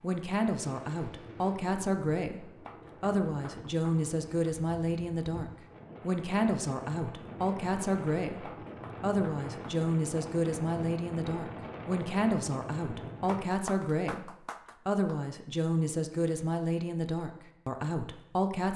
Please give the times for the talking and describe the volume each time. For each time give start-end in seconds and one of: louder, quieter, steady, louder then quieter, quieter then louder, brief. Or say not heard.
0.0-18.7 steady.